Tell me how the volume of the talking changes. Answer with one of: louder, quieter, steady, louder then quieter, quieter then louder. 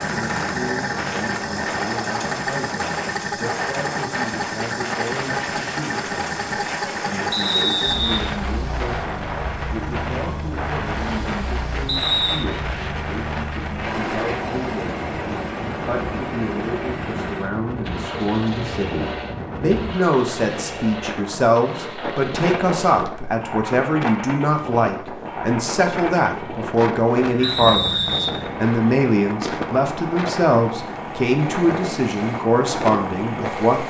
louder.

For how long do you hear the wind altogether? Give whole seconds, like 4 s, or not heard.
34 s.